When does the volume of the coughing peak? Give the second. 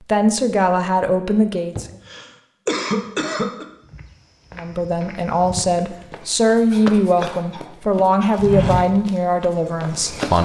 3 s.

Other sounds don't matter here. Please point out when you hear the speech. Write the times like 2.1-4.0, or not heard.
0.0-1.9, 4.5-10.4.